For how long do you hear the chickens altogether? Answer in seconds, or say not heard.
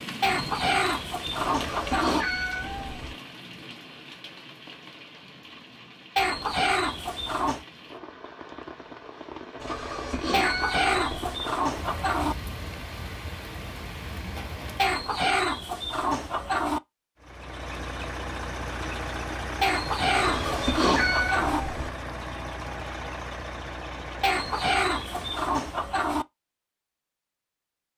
12 s.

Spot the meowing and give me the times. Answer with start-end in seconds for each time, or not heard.
1.4-3.1, 9.6-11.3, 20.1-21.9.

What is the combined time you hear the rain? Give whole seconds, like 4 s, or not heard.
15 s.